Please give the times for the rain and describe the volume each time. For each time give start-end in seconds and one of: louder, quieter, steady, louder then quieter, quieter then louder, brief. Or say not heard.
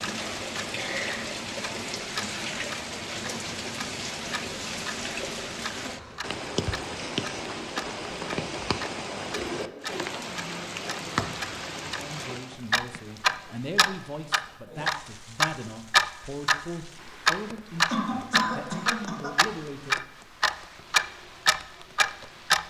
0.0-22.6 quieter.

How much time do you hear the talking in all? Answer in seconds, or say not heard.
8 s.